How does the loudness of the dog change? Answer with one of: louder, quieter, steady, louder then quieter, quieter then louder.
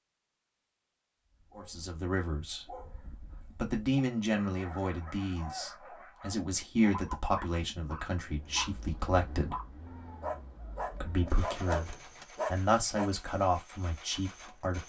louder.